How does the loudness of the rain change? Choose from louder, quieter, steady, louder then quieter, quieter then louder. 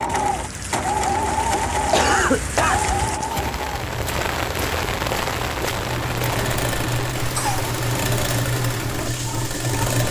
louder then quieter.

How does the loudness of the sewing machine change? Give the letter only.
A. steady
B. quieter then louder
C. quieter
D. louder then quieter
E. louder
B.